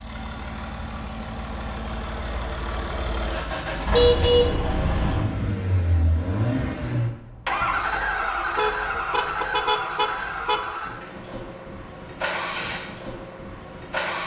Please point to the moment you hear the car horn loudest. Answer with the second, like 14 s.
4 s.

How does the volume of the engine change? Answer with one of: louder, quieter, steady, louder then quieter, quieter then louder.
louder then quieter.